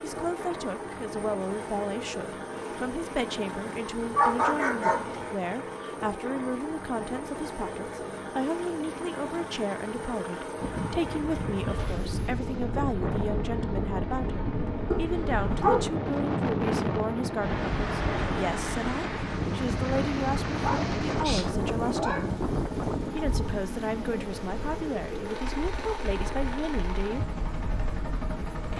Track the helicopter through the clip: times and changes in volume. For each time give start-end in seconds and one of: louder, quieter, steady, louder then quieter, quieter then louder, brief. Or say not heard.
0.0-28.7 steady.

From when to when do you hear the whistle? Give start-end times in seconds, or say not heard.
not heard.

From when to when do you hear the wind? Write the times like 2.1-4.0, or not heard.
10.6-28.7.